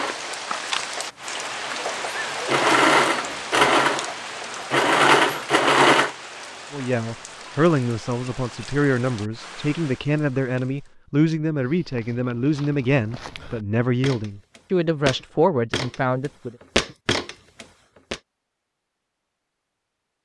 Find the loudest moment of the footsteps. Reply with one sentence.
The volume of the footsteps peaks at 17 seconds.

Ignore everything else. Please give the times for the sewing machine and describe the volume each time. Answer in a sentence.
You can hear the sewing machine from 0.0 to 6.2 s, getting louder.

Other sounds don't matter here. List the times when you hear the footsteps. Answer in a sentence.
The footsteps can be heard from 11.6 to 18.2 s.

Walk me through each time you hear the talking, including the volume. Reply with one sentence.
You can hear the talking from 6.7 to 16.6 s, at a steady volume.